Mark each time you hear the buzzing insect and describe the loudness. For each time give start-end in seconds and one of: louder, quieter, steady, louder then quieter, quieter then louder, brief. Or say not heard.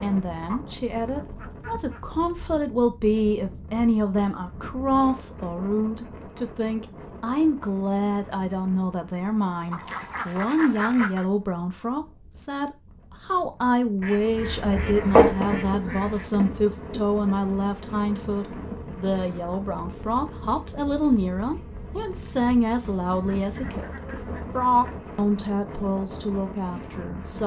14.2-24.9 quieter.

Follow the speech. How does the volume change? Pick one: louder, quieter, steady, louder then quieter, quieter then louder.
steady.